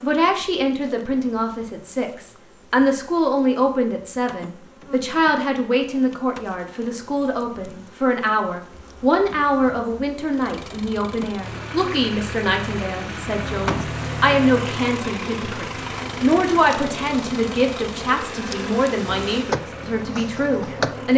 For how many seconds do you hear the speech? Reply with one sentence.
You can hear the speech for 21 seconds altogether.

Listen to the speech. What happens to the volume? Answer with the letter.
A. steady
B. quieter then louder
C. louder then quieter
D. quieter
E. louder
A.